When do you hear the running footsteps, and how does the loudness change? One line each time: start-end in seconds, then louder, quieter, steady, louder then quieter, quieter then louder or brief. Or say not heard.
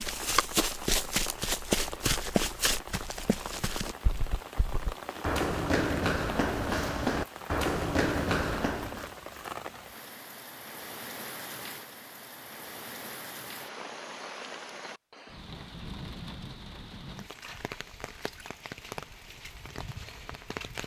0.0-9.1 quieter then louder.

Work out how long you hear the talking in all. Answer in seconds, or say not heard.
not heard.